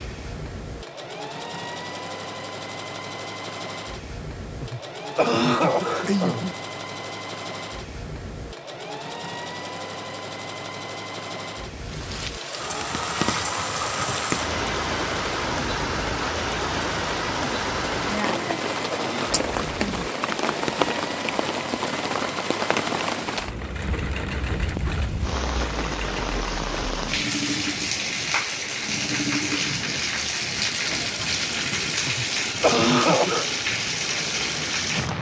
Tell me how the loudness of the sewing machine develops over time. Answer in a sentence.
The volume of the sewing machine stays about the same.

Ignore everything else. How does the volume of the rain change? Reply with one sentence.
The volume of the rain stays about the same.